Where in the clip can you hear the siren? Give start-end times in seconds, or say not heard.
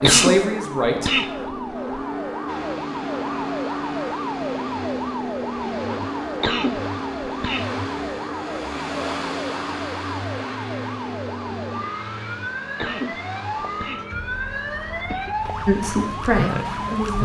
0.0-17.1.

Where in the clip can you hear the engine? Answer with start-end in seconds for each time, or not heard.
2.5-17.1.